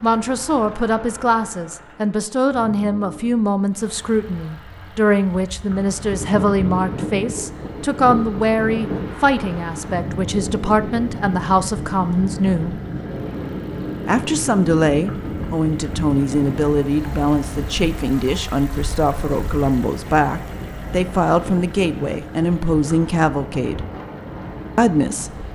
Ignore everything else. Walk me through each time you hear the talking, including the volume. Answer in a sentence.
You can hear the talking from 0.0 to 12.8 s, at a steady volume; from 14.1 to 23.9 s, at a steady volume; and briefly from 24.8 to 25.5 s.